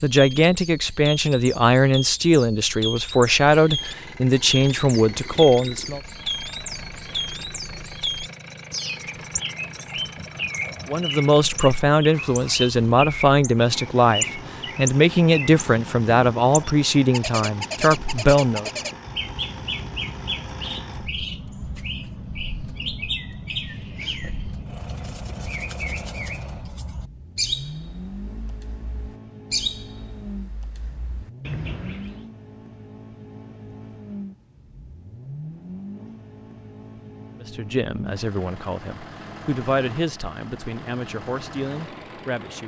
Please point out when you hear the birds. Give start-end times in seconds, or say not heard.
0.0-32.2.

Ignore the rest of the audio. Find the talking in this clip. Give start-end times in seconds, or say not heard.
0.0-6.0, 10.8-18.7, 37.4-42.6.